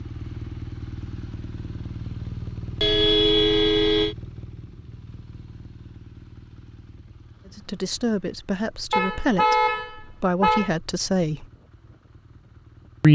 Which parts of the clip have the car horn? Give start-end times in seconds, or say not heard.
2.8-4.2, 8.9-10.7.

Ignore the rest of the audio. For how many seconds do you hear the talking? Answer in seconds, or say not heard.
4 s.